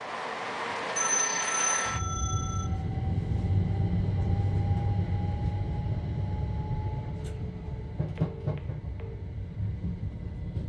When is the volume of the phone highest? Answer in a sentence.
The volume of the phone peaks at 1 second.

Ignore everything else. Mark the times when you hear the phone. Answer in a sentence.
You can hear the phone from 0.9 to 2.7 s and from 8.2 to 9.2 s.